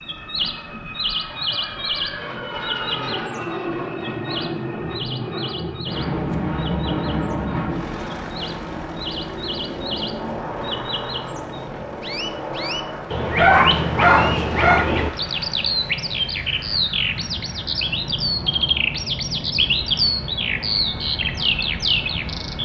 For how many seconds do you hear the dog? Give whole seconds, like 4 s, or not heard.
2 s.